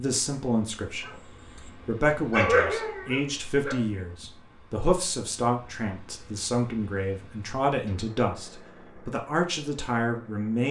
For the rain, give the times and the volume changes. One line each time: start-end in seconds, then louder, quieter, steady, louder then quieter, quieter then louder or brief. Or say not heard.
not heard.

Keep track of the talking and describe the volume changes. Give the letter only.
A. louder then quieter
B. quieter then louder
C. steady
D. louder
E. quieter
C.